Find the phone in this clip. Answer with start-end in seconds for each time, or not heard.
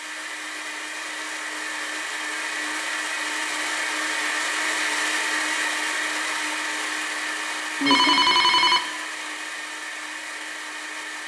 7.8-8.8.